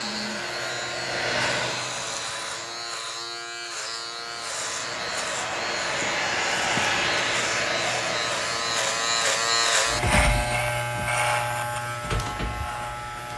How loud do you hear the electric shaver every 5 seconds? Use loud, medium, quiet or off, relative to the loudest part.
medium, loud, loud.